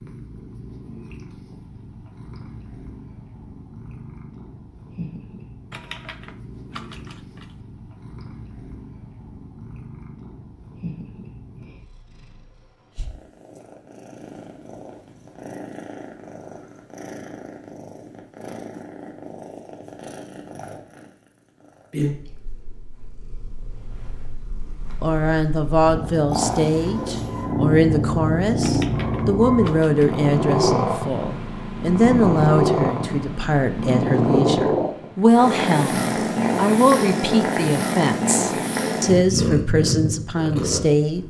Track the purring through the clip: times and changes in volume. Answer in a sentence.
You can hear the purring from 0.0 to 41.2 s, getting louder.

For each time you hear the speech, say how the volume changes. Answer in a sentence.
The speech can be heard from 25.0 to 41.2 s, at a steady volume.